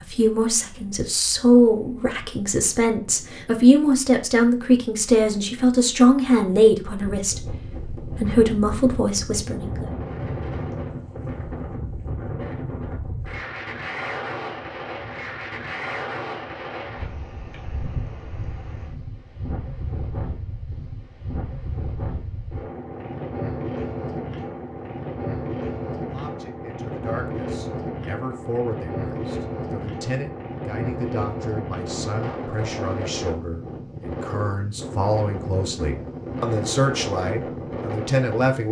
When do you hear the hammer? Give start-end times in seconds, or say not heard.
not heard.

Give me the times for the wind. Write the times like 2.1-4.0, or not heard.
0.0-38.6.